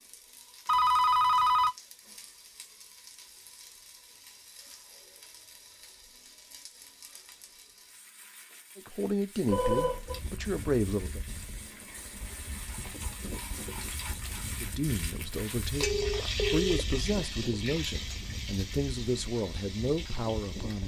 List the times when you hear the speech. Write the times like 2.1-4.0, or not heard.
8.8-11.2, 14.6-20.8.